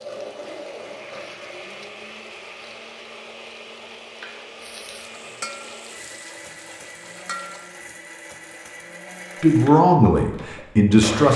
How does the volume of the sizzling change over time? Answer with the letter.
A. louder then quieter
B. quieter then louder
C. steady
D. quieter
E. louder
E.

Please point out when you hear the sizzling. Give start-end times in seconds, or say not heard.
0.0-7.8.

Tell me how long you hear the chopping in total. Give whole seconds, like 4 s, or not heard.
not heard.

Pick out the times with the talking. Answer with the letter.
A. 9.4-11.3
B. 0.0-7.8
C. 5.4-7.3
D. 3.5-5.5
A.